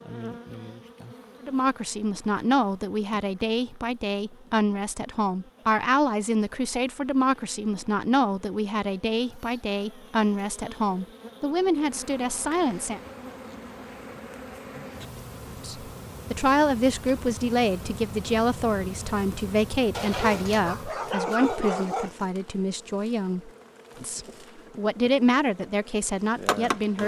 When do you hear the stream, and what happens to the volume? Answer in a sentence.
You can't hear the stream here.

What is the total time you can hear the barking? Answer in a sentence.
The barking can be heard for 2 seconds in total.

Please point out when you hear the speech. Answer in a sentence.
The speech can be heard from 1.4 to 13.0 s and from 15.6 to 27.0 s.